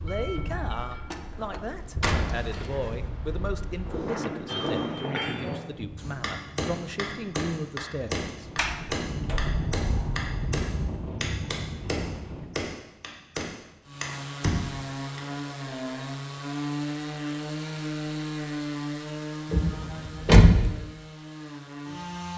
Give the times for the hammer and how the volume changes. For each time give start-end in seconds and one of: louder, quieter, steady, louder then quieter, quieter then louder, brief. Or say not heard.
4.5-15.2 steady.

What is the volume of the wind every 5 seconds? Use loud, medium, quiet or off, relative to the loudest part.
loud, loud, loud, off, off.